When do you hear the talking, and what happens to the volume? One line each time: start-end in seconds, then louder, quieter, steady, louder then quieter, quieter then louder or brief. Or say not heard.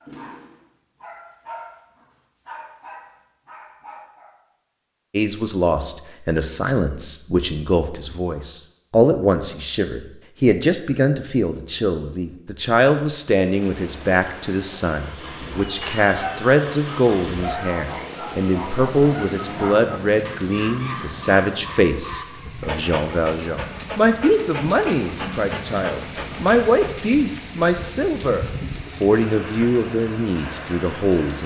5.1-31.4 steady.